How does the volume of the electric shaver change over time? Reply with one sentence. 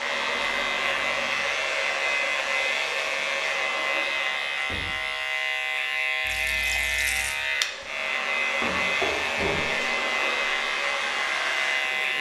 The volume of the electric shaver stays about the same.